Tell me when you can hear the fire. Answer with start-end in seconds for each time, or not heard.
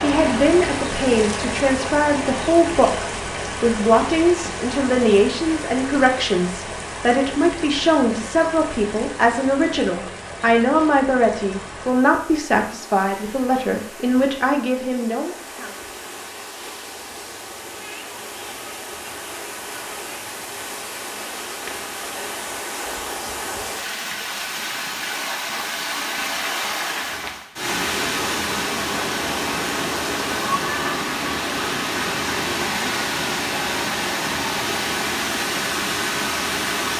not heard.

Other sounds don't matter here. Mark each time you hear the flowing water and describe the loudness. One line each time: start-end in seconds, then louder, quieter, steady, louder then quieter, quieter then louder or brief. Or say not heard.
0.0-36.9 quieter then louder.